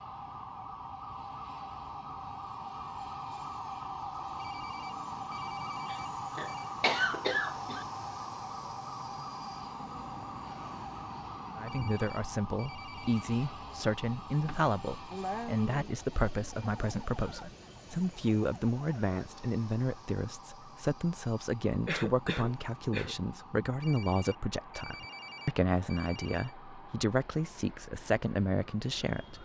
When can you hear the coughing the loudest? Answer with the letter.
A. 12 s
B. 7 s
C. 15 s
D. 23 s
B.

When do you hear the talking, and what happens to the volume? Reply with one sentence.
You can hear the talking from 11.6 to 29.4 s, at a steady volume.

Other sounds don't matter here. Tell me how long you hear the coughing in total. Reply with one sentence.
The coughing can be heard for 5 seconds in total.